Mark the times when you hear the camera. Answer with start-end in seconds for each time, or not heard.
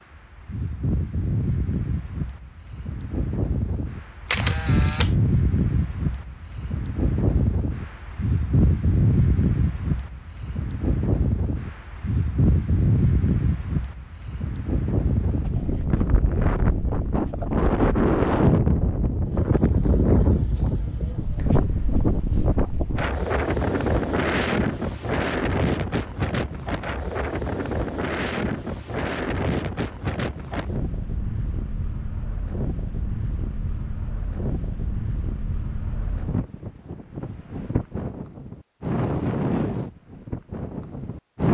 4.2-5.2.